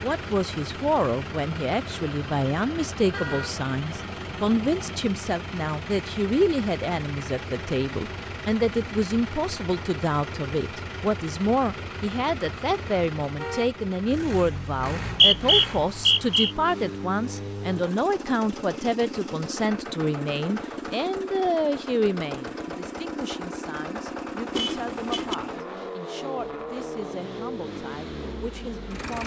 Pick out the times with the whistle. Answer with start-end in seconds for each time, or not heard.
14.9-16.5.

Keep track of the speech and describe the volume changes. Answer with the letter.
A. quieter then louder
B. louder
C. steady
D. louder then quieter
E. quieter
E.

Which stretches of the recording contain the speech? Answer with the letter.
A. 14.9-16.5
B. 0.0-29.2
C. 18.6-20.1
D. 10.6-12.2
B.